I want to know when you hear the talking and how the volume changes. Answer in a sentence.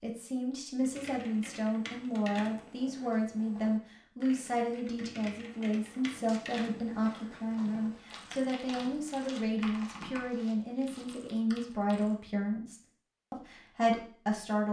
You can hear the talking from 0.0 to 14.6 s, at a steady volume.